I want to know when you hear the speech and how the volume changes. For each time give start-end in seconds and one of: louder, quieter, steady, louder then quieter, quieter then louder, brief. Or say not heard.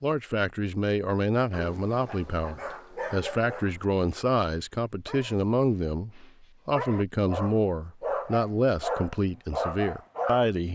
0.0-10.7 steady.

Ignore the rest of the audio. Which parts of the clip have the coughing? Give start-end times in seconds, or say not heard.
not heard.